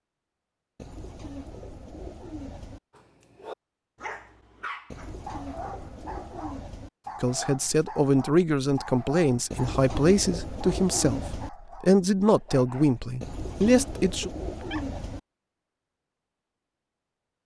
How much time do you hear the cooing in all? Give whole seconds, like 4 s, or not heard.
8 s.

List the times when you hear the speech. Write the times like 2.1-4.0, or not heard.
7.2-14.3.